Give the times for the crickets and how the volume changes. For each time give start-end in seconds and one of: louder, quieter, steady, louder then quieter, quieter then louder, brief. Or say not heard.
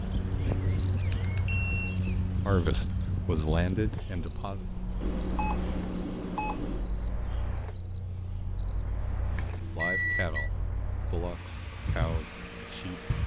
0.0-13.2 quieter.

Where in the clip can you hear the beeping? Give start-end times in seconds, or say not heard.
1.1-2.0, 5.0-6.9, 9.3-10.5.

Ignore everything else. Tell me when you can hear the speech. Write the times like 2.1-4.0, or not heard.
2.5-4.7, 9.6-13.1.